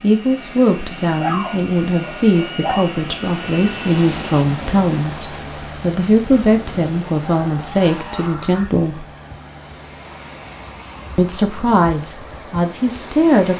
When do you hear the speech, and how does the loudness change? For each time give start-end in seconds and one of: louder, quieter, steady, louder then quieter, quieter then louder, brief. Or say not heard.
0.0-9.1 steady
11.2-13.5 brief.